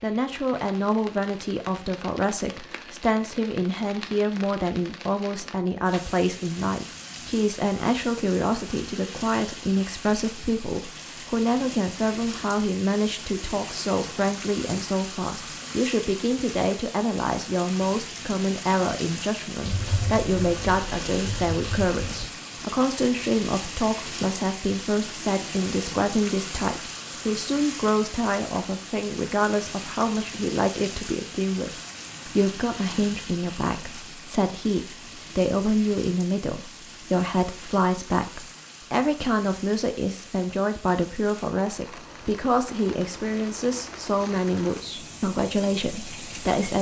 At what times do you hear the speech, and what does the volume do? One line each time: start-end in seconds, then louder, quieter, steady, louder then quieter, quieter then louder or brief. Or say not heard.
0.0-46.7 steady.